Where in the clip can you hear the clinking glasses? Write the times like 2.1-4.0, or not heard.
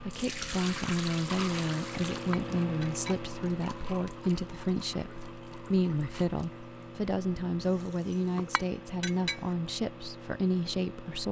2.1-3.3, 8.3-9.4.